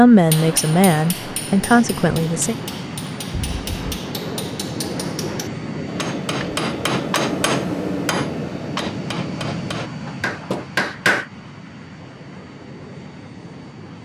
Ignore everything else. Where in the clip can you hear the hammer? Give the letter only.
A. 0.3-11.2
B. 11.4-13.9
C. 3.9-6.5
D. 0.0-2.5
A.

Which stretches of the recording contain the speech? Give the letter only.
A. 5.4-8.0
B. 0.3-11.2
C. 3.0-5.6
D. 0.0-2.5
D.